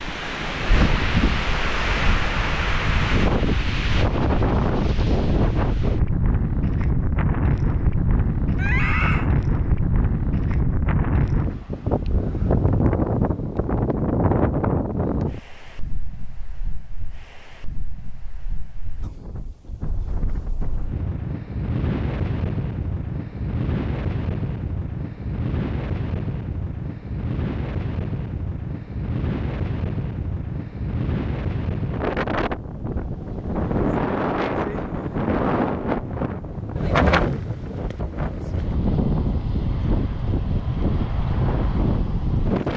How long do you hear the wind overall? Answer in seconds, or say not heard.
43 s.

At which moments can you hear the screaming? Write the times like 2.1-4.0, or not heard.
8.6-9.3.